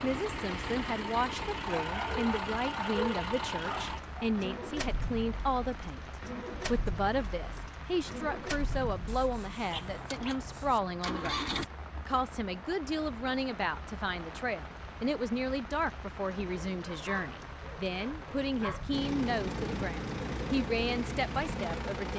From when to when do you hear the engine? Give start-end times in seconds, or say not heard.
0.0-11.7, 18.9-22.1.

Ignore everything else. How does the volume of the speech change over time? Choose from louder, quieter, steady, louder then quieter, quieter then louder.
steady.